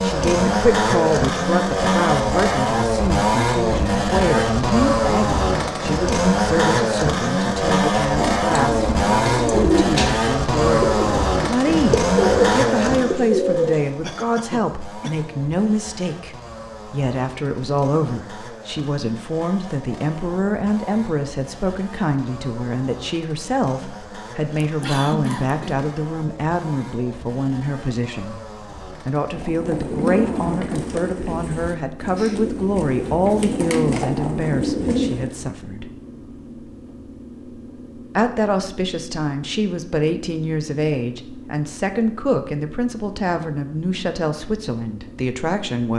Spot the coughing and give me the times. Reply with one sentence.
You can hear the coughing from 14.0 to 15.2 s and from 24.6 to 25.9 s.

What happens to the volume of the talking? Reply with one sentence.
The loudness of the talking stays about the same.